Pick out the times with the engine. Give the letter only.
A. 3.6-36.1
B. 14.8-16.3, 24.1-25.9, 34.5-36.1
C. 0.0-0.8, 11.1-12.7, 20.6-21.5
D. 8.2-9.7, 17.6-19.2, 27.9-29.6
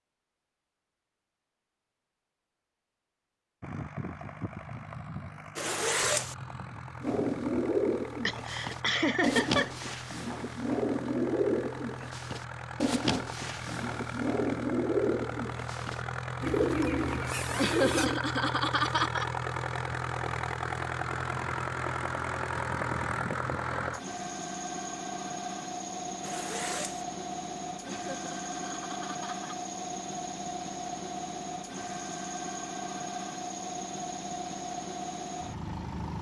A.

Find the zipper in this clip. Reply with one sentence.
You can hear the zipper from 5.5 to 6.3 s, from 16.6 to 18.2 s and from 26.2 to 27.1 s.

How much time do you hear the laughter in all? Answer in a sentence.
The laughter can be heard for 5 seconds in total.